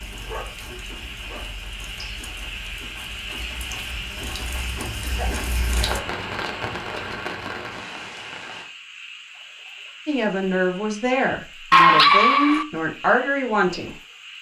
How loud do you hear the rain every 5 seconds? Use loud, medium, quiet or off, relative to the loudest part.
medium, loud, off.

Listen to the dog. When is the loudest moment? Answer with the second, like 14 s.
12 s.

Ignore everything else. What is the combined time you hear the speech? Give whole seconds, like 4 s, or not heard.
4 s.